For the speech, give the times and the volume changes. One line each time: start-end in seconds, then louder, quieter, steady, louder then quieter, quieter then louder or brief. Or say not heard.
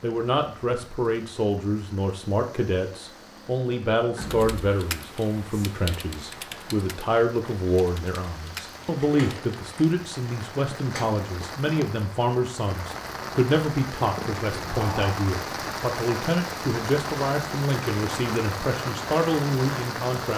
0.0-20.3 steady.